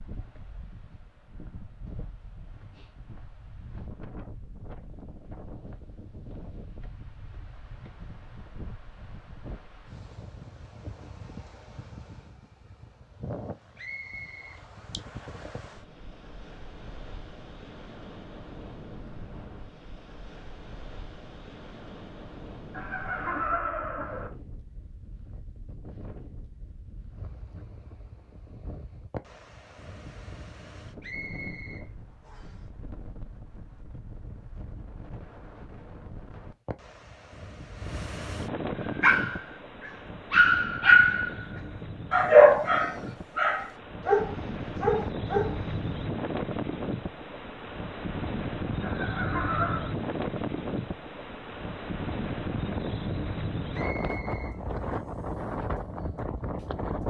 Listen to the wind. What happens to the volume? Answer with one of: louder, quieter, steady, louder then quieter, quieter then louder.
louder.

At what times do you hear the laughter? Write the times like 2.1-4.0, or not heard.
22.7-24.3, 48.8-50.0.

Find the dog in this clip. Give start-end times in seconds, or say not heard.
38.8-41.3, 42.1-45.6.